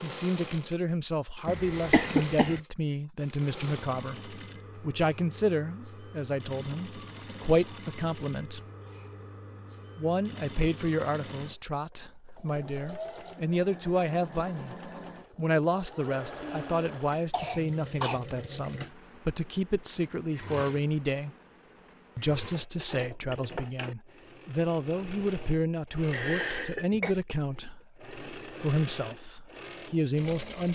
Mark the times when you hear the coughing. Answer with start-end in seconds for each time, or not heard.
1.4-2.6, 16.4-18.2, 26.1-27.1.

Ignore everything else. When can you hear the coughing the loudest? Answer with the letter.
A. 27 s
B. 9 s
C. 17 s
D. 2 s
D.